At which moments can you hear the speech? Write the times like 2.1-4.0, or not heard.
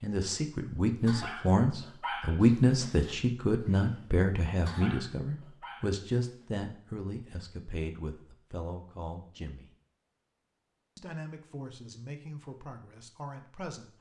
0.0-9.7, 10.9-13.9.